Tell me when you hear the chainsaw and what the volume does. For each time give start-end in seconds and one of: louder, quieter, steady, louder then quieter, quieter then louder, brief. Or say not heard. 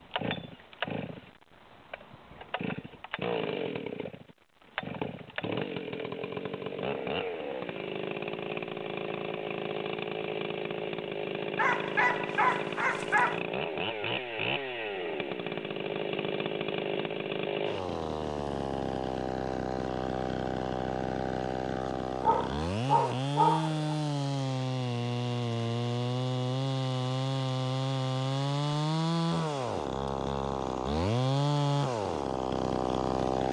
0.0-33.4 louder.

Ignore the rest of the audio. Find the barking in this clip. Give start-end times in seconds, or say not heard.
11.6-13.4, 22.2-23.9.